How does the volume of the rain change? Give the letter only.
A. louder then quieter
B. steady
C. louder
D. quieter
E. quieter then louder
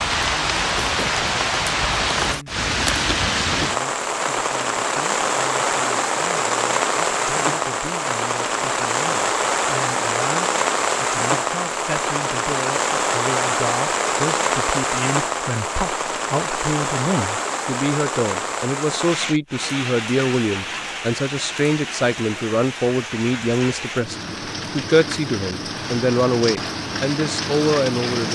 D.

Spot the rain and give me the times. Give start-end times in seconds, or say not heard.
0.0-28.3.